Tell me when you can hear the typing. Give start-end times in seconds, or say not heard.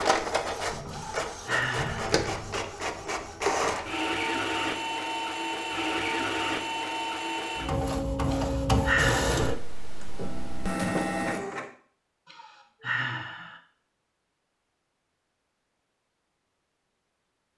0.7-2.7.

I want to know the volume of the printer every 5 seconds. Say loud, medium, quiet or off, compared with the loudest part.
loud, loud, loud, off.